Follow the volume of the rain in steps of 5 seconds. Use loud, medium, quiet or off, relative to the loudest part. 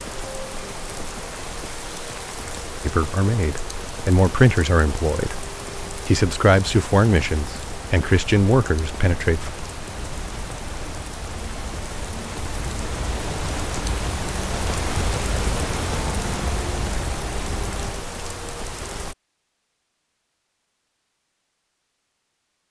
medium, medium, loud, loud, off.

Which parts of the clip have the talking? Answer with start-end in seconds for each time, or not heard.
2.9-9.5.